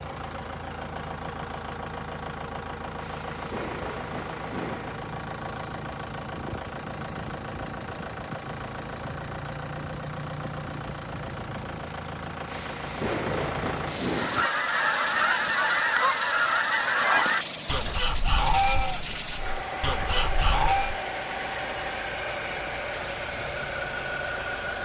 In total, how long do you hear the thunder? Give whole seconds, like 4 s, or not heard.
4 s.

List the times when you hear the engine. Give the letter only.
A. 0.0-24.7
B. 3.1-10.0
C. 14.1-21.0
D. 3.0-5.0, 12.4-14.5
A.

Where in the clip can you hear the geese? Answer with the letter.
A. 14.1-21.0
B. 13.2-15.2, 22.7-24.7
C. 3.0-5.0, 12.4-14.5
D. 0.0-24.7
A.